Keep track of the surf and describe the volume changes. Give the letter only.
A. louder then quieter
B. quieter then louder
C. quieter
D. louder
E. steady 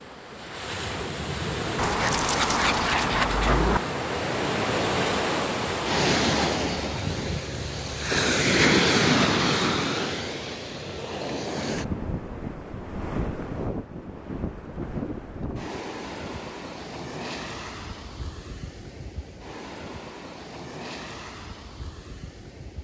A.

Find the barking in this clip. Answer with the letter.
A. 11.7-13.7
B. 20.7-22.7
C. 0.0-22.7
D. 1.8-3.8
D.